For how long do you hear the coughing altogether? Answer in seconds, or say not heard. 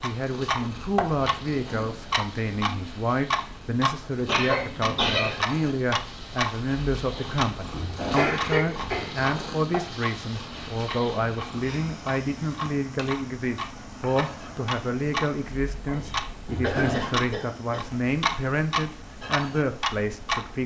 3 s.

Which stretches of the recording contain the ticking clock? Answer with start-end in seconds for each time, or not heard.
0.0-20.6.